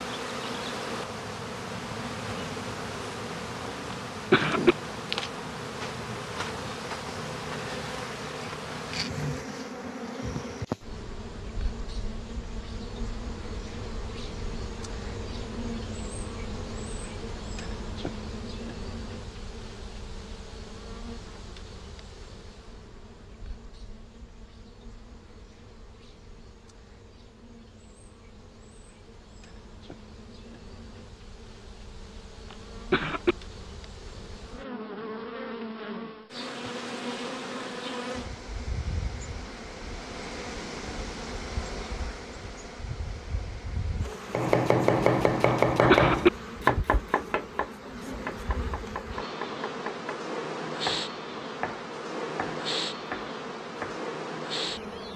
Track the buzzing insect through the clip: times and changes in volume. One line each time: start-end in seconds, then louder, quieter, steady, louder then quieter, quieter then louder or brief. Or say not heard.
0.0-55.1 quieter then louder.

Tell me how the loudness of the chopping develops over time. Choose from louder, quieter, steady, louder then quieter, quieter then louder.
quieter.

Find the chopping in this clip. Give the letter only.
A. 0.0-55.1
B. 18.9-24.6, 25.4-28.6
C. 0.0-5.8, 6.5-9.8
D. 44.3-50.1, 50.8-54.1
D.